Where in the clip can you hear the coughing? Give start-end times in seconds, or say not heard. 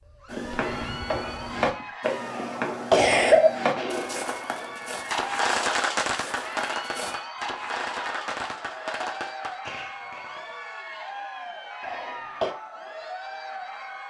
2.4-3.5, 11.8-12.6.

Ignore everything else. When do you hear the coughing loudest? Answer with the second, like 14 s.
3 s.